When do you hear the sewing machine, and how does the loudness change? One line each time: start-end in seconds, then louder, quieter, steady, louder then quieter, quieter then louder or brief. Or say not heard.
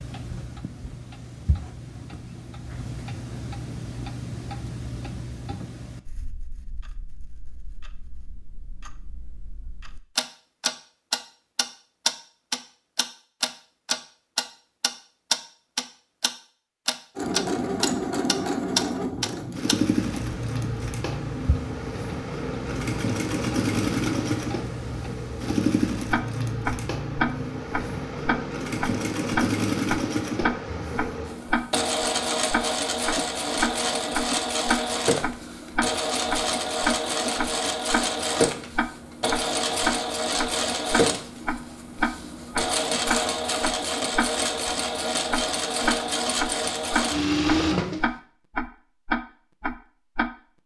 17.1-48.1 steady.